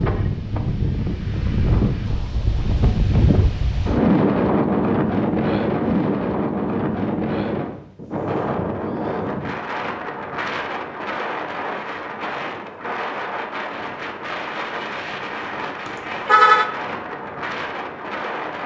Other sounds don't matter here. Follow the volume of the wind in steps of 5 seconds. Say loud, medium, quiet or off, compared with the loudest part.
loud, loud, medium, medium.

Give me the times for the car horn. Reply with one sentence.
The car horn can be heard from 15.8 to 16.7 s.